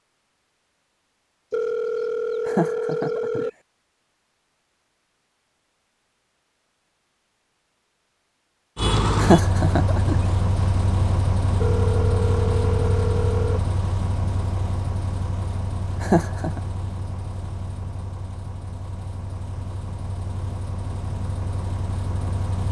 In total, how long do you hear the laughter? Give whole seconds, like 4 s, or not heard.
3 s.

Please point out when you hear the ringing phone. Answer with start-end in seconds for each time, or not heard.
1.5-3.5, 11.6-13.6.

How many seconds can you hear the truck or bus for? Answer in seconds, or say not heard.
14 s.